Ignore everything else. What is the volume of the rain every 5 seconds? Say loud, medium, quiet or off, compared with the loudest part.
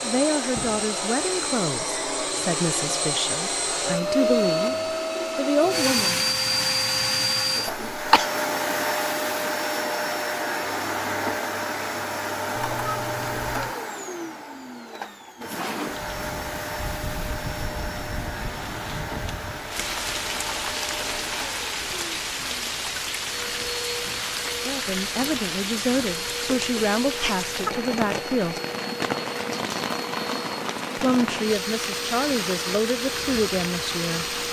off, off, off, medium, loud, loud, loud.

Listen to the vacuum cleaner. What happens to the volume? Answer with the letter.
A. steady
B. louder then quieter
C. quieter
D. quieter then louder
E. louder
C.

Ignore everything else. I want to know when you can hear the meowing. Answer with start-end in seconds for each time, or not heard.
12.6-13.8.